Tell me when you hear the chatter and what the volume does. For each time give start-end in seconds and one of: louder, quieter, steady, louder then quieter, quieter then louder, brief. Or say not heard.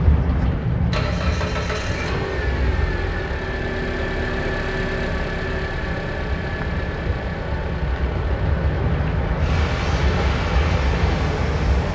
not heard.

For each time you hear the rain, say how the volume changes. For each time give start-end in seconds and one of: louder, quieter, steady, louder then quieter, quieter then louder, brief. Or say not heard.
0.0-11.9 quieter then louder.